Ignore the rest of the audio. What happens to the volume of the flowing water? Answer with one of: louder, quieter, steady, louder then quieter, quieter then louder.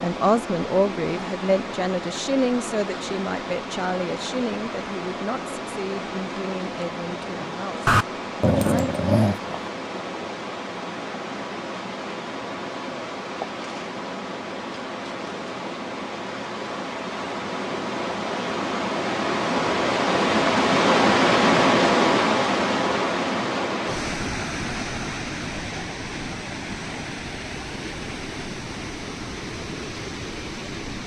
louder then quieter.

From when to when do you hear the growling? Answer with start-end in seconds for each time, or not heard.
7.8-9.7.